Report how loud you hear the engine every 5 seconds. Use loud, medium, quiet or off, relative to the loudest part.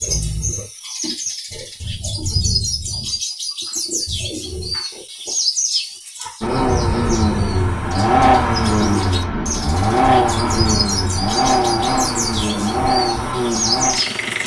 off, loud, loud.